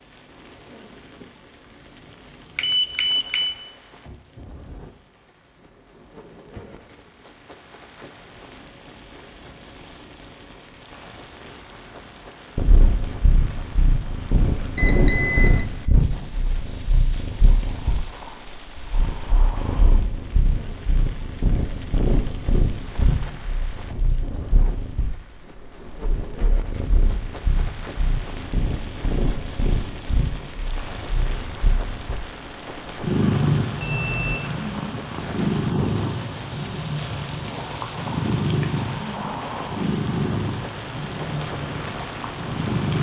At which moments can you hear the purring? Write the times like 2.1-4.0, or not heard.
12.6-42.9.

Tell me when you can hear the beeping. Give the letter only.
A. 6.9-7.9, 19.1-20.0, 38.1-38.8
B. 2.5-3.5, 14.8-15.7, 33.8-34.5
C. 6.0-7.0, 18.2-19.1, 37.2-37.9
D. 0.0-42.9
B.